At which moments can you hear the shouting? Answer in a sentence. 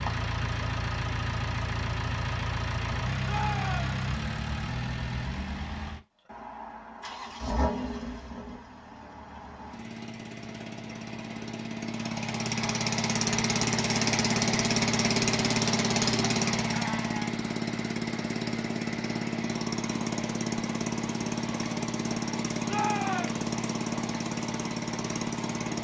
You can hear the shouting from 3.2 to 3.9 s and from 22.6 to 23.4 s.